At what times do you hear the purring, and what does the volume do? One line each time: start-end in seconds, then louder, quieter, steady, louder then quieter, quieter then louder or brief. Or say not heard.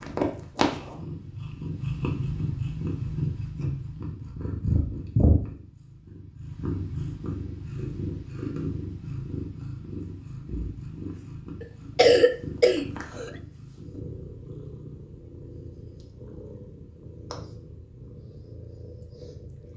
0.0-19.7 quieter.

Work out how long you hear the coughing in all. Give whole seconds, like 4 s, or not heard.
2 s.